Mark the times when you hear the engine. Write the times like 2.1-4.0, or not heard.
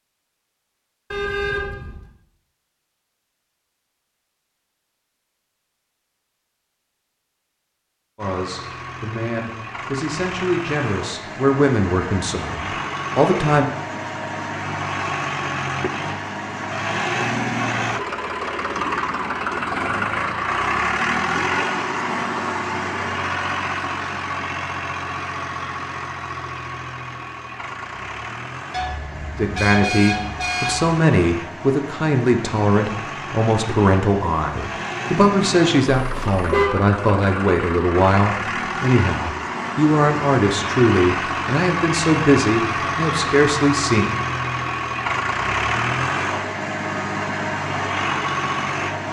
8.2-49.0.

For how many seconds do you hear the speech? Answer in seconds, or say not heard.
20 s.